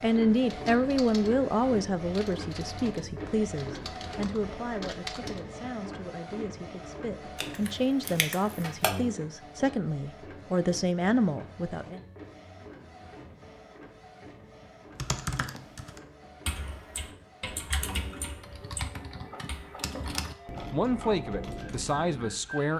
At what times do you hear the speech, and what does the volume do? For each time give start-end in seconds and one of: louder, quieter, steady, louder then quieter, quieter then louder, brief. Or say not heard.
0.0-12.0 quieter then louder
20.7-22.7 brief.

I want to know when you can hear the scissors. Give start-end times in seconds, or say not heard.
7.3-8.9.